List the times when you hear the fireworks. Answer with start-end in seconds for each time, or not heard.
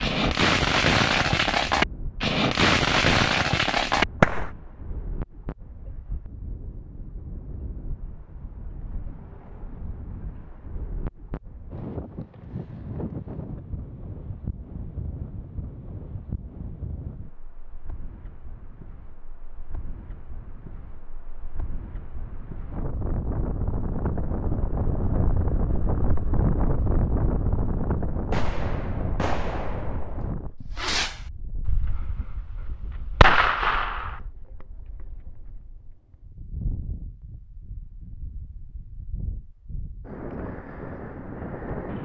0.0-4.5, 28.3-34.2.